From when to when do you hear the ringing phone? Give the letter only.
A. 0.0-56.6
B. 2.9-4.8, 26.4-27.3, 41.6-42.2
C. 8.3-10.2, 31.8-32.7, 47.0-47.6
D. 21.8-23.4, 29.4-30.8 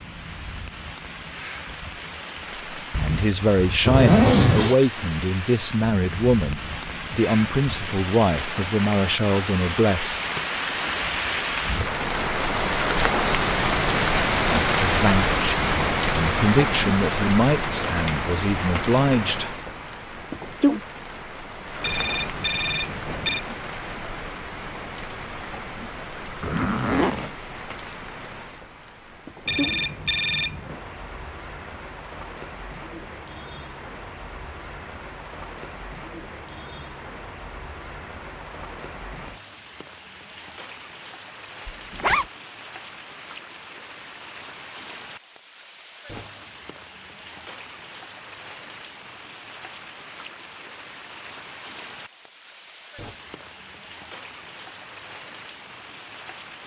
D.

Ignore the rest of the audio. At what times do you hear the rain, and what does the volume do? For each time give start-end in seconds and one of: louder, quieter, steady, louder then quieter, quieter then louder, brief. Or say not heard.
0.0-56.6 louder then quieter.